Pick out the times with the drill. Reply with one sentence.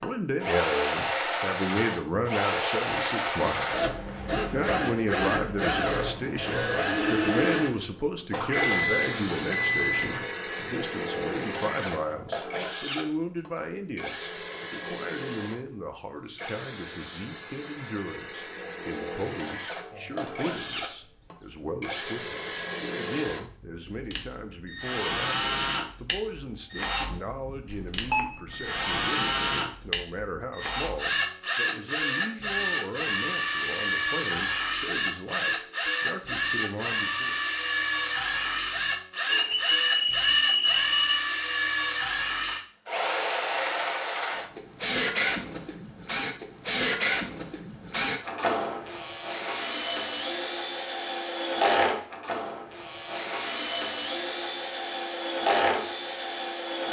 You can hear the drill from 0.0 to 56.8 s.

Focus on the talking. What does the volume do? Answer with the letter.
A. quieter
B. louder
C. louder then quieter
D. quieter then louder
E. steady
A.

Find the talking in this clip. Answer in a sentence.
The talking can be heard from 0.0 to 37.4 s.